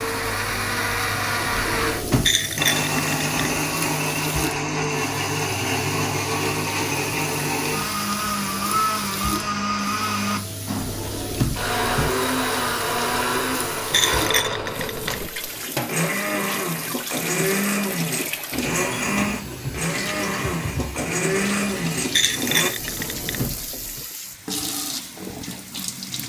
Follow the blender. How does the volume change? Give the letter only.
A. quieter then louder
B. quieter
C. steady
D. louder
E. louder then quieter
C.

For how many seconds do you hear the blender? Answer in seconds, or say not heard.
23 s.